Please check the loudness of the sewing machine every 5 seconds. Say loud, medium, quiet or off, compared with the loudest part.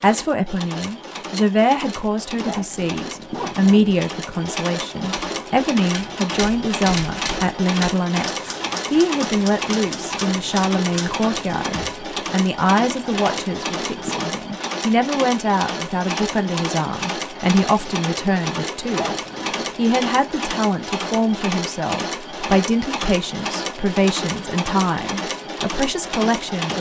medium, loud, loud, loud, loud, loud.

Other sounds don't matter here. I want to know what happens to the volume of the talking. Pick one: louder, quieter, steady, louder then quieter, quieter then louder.
steady.